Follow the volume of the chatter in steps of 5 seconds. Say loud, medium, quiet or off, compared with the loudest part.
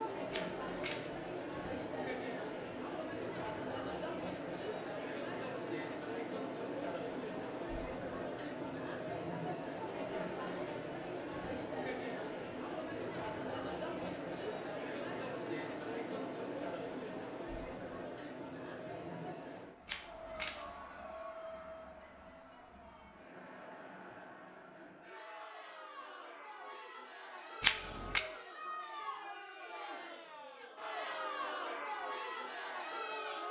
loud, loud, loud, loud, medium, medium, loud.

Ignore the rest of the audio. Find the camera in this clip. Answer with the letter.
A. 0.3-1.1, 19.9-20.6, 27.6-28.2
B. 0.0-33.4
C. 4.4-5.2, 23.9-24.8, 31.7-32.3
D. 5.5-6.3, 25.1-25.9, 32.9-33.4
A.